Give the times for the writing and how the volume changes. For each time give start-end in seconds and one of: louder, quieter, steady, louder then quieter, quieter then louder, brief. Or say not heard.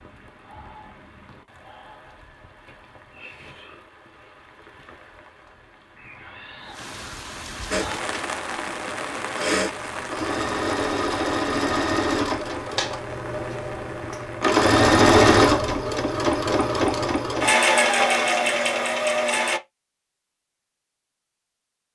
not heard.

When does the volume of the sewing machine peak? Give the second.
15 s.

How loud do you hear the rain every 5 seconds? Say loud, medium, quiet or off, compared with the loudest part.
quiet, loud, loud, off, off.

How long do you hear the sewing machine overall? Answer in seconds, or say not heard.
12 s.